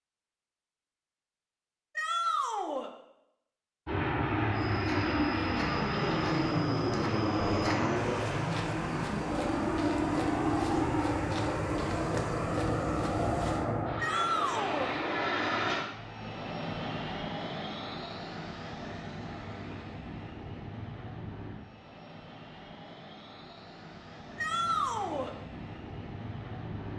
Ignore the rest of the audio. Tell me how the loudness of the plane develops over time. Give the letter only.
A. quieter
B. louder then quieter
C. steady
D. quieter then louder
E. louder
A.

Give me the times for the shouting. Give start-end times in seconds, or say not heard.
1.9-2.9, 13.9-14.9, 24.4-25.4.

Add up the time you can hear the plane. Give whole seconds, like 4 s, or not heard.
23 s.